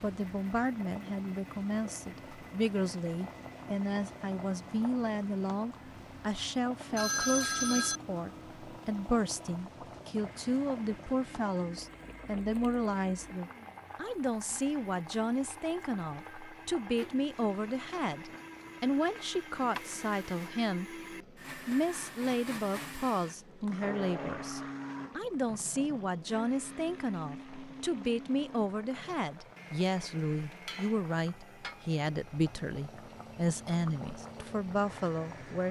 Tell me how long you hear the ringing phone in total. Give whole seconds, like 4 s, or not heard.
2 s.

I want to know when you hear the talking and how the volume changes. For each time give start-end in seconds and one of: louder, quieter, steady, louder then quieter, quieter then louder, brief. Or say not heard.
0.0-35.6 steady.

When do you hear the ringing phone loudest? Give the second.
7 s.